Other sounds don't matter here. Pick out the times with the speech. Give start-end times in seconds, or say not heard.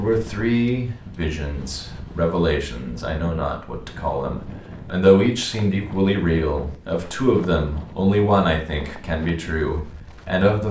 0.0-10.6.